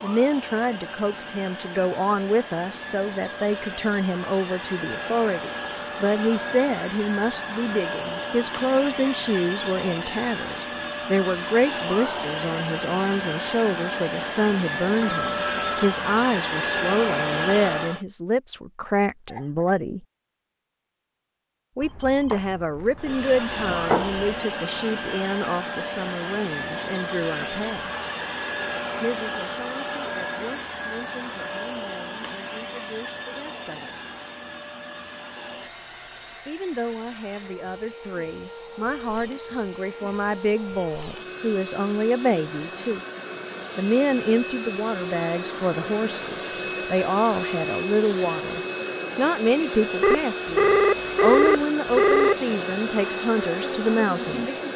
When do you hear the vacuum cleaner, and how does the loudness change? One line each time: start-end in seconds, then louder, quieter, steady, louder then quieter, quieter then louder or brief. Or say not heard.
0.0-18.1 louder
22.9-54.7 quieter then louder.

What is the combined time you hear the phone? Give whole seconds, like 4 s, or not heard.
6 s.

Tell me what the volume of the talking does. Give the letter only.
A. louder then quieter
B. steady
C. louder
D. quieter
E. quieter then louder
B.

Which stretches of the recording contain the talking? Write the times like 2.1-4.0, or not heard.
0.0-20.0, 21.8-27.9, 29.0-34.0, 36.5-43.0, 43.8-54.5.